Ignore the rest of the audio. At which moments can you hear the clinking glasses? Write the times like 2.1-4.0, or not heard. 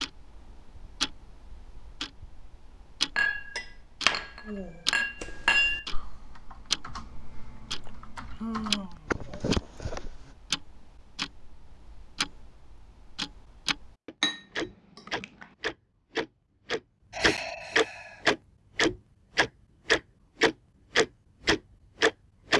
3.1-5.8, 14.2-15.4.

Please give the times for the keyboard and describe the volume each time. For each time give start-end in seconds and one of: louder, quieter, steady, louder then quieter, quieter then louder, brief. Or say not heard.
5.2-10.3 louder.